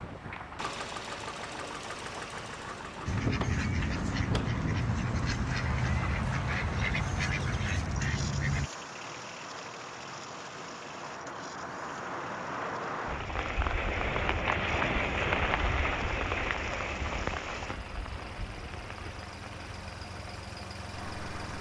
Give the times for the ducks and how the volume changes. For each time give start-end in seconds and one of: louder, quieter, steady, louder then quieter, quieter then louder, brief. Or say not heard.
3.0-8.7 steady.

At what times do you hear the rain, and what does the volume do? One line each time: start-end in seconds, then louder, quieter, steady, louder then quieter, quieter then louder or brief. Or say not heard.
0.0-21.5 louder then quieter.